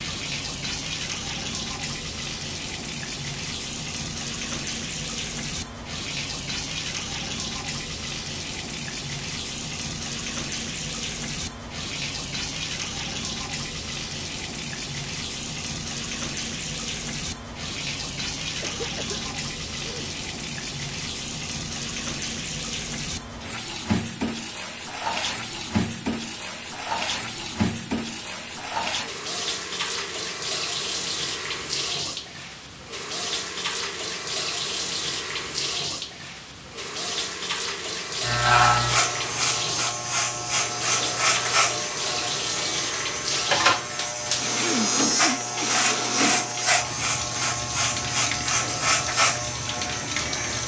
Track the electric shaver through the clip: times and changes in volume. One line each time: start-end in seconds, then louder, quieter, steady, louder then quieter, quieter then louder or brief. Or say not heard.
38.2-50.6 steady.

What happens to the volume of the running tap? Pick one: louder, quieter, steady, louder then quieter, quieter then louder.
steady.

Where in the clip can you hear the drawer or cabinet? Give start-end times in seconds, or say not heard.
not heard.